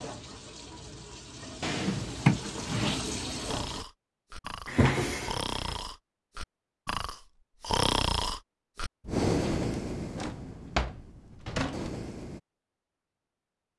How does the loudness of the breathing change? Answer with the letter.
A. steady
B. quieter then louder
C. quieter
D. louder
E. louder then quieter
E.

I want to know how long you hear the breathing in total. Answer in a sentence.
The breathing can be heard for 9 seconds in total.